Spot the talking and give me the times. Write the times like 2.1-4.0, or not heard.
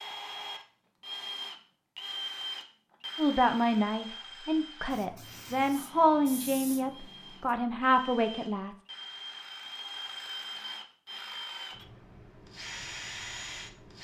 3.1-8.8.